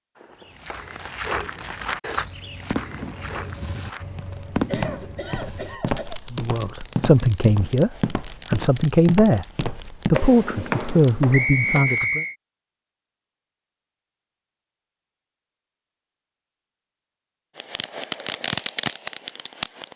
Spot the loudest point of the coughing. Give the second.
5 s.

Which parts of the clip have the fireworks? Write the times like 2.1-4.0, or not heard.
0.1-11.2, 17.6-19.9.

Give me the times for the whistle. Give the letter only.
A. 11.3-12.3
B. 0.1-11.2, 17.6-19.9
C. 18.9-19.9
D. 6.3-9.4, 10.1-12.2
A.